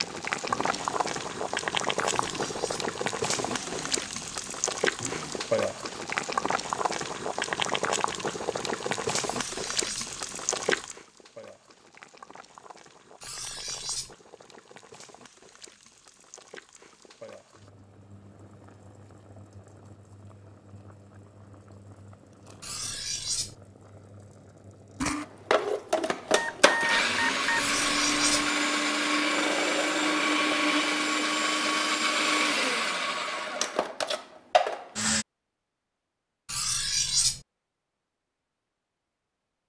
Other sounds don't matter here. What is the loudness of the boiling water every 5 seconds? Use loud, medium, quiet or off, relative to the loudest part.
loud, loud, medium, quiet, quiet, quiet, off, off.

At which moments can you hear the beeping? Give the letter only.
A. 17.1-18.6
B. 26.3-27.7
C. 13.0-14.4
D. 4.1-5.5
B.